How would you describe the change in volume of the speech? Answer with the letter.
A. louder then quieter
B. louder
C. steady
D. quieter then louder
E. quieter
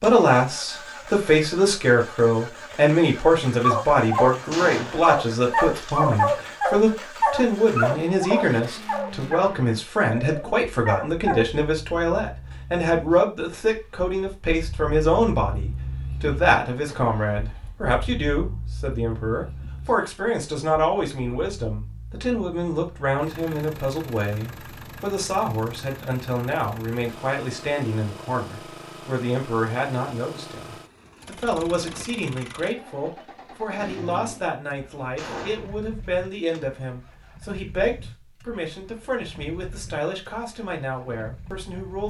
E.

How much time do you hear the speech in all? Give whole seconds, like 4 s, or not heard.
42 s.